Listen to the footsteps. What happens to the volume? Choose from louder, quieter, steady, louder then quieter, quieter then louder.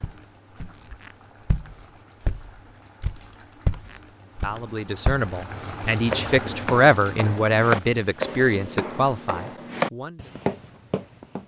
louder.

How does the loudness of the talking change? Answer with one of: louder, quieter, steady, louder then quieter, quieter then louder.
louder then quieter.